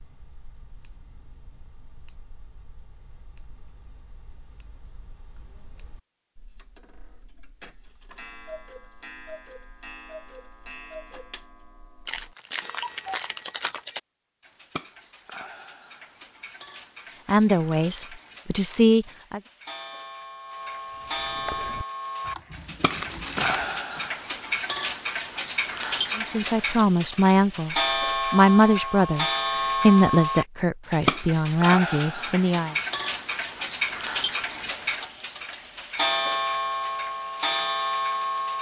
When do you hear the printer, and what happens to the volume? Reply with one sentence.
You can't hear the printer here.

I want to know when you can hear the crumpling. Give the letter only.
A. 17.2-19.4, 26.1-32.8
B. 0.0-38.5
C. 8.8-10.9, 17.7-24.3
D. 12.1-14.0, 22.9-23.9
D.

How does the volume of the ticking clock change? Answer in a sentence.
The loudness of the ticking clock goes up.